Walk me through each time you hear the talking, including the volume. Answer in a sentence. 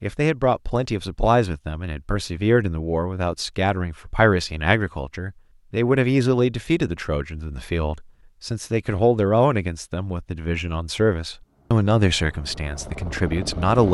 The talking can be heard from 0.0 to 13.9 s, at a steady volume.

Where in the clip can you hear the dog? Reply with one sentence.
The dog can't be heard in this clip.